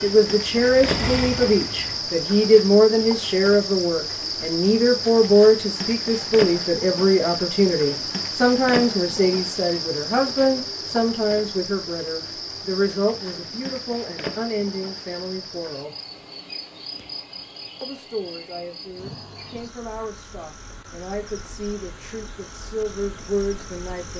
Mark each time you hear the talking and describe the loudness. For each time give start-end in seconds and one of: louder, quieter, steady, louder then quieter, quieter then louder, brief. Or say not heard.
0.0-15.9 quieter
17.8-24.1 louder.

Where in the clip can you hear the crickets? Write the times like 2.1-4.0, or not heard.
0.0-24.1.